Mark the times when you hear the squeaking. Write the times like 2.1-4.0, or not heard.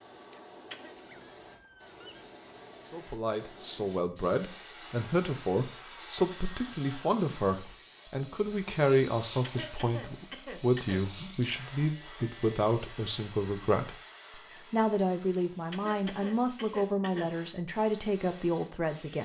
0.9-2.3.